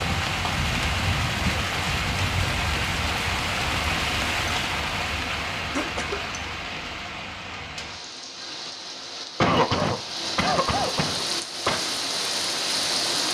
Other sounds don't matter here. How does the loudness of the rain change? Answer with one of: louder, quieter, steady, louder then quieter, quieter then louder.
quieter then louder.